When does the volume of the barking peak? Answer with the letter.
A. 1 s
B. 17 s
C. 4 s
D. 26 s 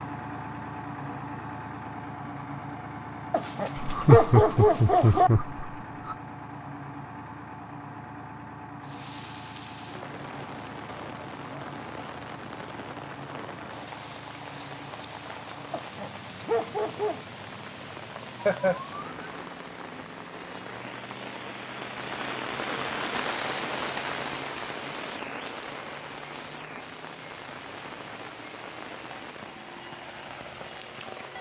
C.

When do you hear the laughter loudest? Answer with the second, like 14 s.
4 s.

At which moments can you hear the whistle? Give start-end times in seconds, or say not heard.
not heard.